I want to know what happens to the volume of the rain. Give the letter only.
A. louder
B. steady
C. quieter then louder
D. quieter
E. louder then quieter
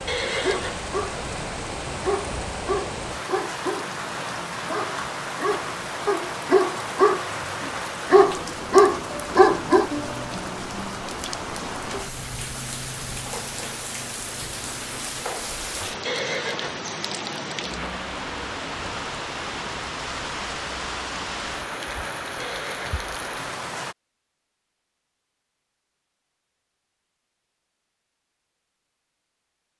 B.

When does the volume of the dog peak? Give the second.
9 s.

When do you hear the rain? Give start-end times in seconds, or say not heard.
0.0-23.9.